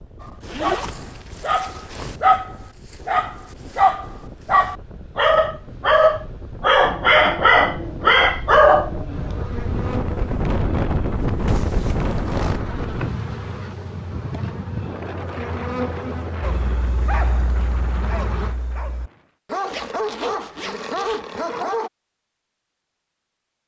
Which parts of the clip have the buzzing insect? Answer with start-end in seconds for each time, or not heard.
9.0-18.6.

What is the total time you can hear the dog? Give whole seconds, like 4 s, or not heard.
15 s.